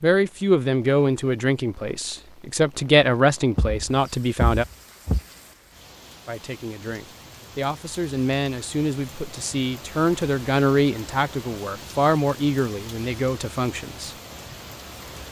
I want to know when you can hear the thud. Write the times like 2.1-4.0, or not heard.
3.5-5.2.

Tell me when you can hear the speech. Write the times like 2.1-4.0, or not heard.
0.0-4.7, 6.2-14.2.